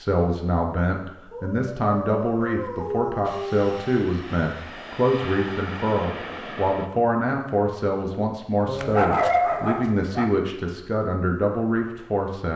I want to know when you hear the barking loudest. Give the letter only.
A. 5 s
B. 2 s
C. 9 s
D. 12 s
C.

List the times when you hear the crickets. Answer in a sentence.
You can't hear the crickets here.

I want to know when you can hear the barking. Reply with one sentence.
The barking can be heard from 1.3 to 4.0 s and from 8.7 to 10.3 s.